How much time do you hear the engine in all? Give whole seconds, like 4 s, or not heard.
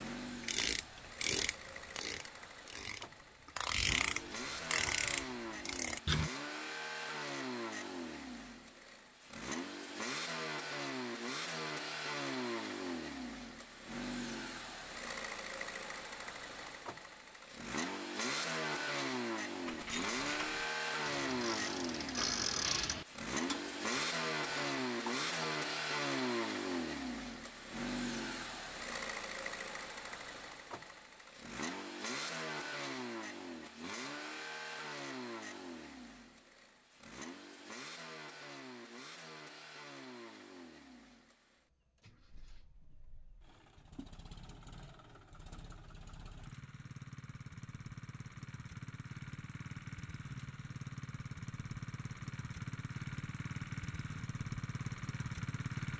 56 s.